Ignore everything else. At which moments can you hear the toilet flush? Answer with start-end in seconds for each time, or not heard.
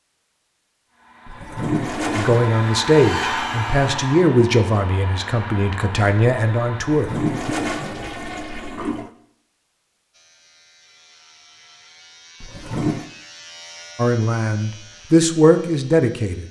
1.2-2.5, 6.9-9.1, 12.4-13.1.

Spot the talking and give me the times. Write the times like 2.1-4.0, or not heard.
2.1-7.5, 13.9-16.4.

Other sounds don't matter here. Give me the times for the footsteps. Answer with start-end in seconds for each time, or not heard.
not heard.